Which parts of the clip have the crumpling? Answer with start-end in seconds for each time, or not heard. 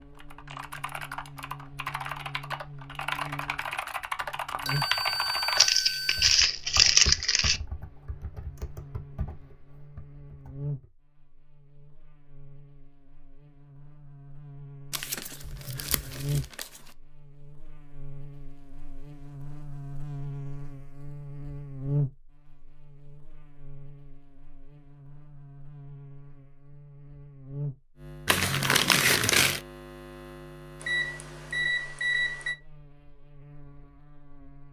5.5-7.6, 14.9-16.6, 28.2-29.6.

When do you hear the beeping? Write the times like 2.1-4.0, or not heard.
4.7-6.3, 15.4-16.5, 30.8-32.5.